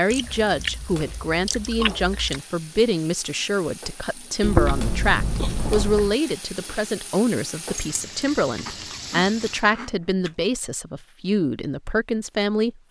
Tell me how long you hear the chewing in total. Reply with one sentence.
You can hear the chewing for 6 seconds altogether.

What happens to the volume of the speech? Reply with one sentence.
The volume of the speech stays about the same.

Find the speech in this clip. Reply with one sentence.
The speech can be heard from 0.0 to 12.8 s.